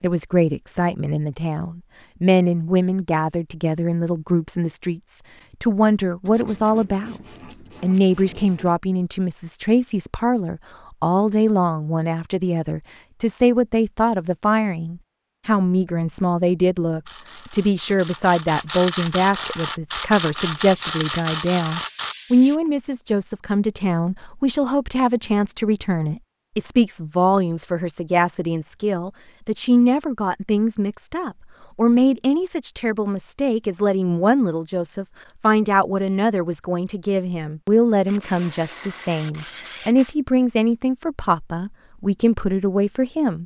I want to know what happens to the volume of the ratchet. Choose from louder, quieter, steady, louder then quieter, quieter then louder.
louder.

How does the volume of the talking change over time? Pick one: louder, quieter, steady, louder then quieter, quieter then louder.
steady.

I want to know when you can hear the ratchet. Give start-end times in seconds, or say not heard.
17.1-22.1.